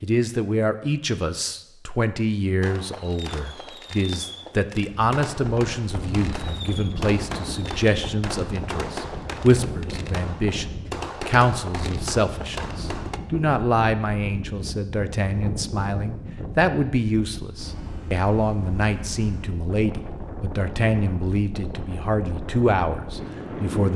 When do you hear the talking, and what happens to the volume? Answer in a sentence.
You can hear the talking from 0.0 to 23.9 s, at a steady volume.